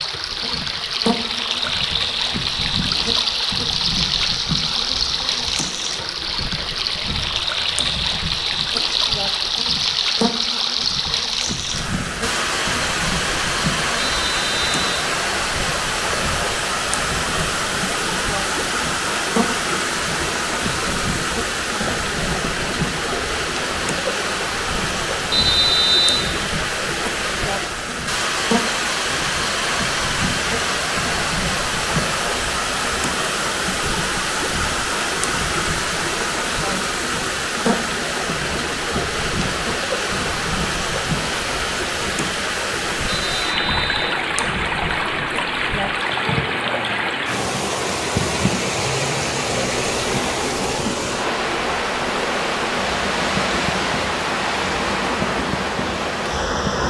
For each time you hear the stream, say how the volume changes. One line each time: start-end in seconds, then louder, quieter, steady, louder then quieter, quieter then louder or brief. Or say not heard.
0.0-56.8 steady.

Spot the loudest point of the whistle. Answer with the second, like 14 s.
26 s.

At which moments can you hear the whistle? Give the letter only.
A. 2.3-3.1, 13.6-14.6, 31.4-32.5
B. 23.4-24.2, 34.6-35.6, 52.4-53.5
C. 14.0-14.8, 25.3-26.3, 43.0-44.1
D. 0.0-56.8
C.